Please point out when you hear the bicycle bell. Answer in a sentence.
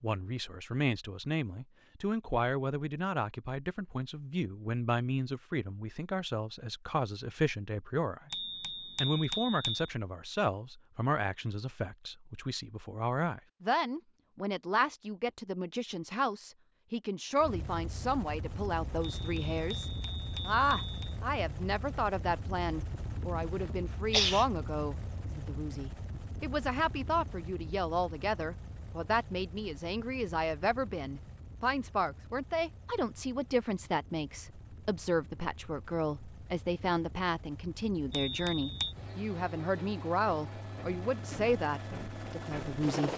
You can hear the bicycle bell from 8.3 to 9.9 s, from 19.1 to 21.1 s and from 38.1 to 39.0 s.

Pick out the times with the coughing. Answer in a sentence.
You can hear the coughing from 23.6 to 24.4 s.